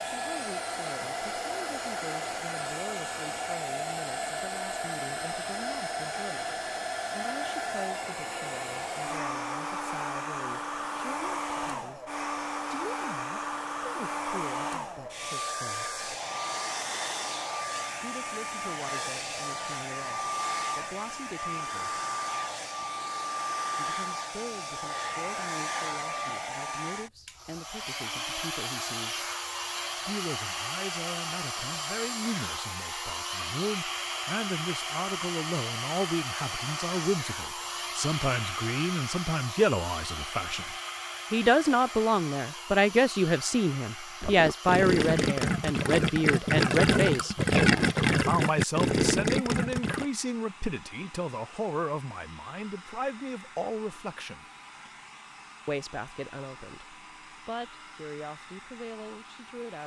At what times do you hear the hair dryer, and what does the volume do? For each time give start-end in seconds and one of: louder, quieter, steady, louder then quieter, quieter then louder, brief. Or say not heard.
0.0-59.8 quieter.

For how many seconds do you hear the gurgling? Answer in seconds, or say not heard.
6 s.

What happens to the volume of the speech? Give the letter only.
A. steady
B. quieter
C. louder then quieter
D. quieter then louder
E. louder
C.